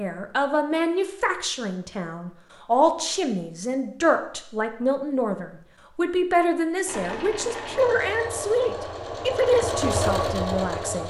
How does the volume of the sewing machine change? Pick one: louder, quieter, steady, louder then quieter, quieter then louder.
louder.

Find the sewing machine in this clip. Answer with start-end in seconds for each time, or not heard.
6.8-11.0.